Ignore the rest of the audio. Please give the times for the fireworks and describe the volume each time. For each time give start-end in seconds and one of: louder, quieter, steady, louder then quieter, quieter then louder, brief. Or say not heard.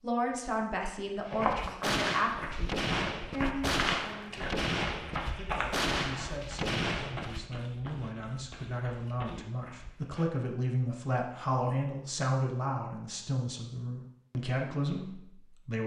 1.2-7.5 steady.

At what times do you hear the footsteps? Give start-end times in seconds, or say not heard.
1.2-10.3.